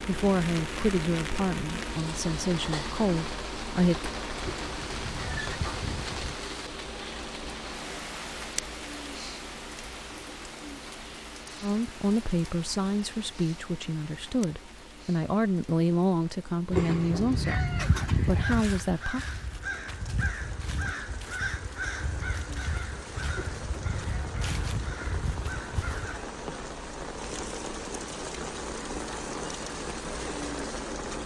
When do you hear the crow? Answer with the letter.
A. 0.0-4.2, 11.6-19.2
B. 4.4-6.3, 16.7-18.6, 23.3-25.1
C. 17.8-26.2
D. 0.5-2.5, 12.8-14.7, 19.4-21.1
C.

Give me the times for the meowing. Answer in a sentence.
You can hear the meowing from 4.4 to 6.3 s, from 16.7 to 18.6 s and from 23.3 to 25.1 s.